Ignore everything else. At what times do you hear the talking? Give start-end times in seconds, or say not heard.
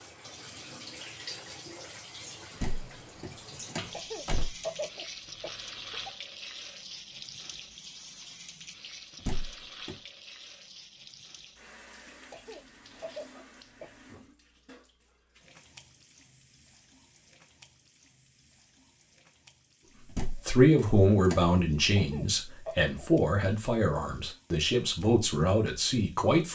20.1-26.5.